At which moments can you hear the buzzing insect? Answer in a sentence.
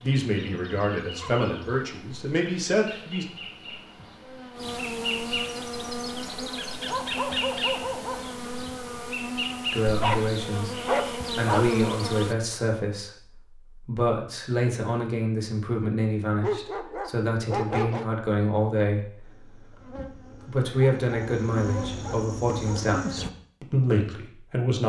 You can hear the buzzing insect from 0.0 to 12.3 s and from 19.2 to 23.3 s.